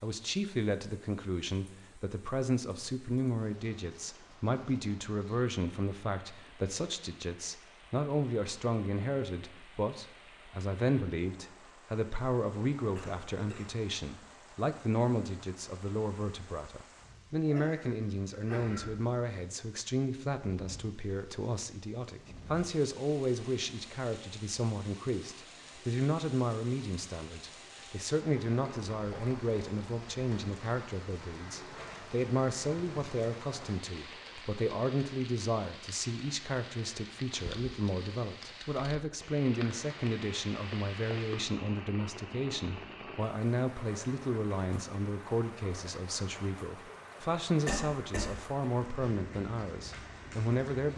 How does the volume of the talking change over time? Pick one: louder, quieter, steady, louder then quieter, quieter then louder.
steady.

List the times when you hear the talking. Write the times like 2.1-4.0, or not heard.
0.0-50.9.